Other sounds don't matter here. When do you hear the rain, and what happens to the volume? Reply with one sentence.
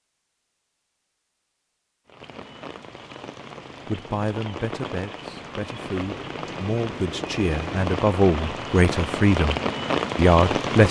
You can hear the rain from 2.0 to 10.8 s, getting louder.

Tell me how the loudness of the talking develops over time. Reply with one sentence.
The loudness of the talking goes up.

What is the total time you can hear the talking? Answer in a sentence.
You can hear the talking for 7 seconds altogether.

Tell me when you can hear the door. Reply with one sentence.
The door can't be heard in this clip.